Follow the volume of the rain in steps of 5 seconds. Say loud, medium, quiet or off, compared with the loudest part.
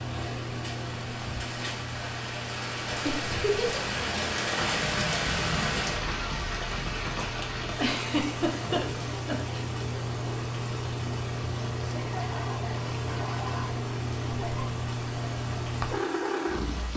loud, loud, medium, medium.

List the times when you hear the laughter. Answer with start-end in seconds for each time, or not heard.
3.0-3.9, 7.8-9.6, 11.9-14.7.